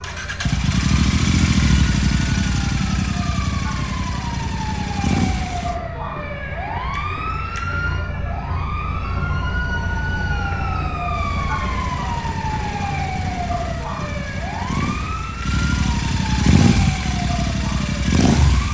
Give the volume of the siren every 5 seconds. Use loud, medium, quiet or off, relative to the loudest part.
medium, loud, loud, medium.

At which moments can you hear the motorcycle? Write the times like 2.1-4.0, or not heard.
0.0-5.8, 11.1-18.6.